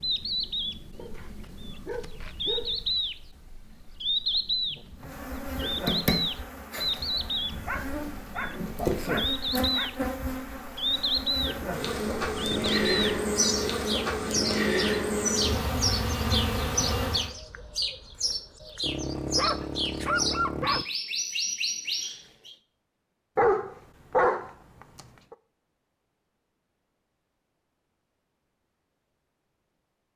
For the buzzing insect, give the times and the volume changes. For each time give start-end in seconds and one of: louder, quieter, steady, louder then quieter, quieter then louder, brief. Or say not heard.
5.0-17.3 louder.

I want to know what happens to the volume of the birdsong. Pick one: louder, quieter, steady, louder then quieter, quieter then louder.
steady.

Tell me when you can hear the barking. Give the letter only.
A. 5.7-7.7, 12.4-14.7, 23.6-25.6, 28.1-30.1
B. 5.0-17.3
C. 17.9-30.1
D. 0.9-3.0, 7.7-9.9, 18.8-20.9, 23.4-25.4
D.